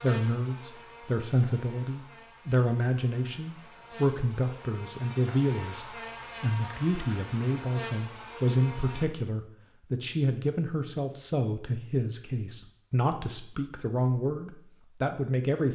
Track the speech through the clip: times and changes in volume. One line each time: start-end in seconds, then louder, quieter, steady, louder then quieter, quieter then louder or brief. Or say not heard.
0.0-15.7 steady.